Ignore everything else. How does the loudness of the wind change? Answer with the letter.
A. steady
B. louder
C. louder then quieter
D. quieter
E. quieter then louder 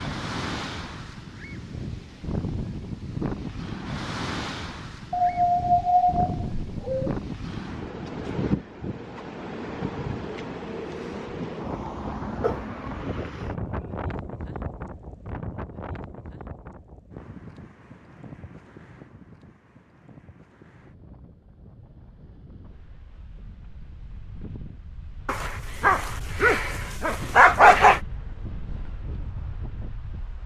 E.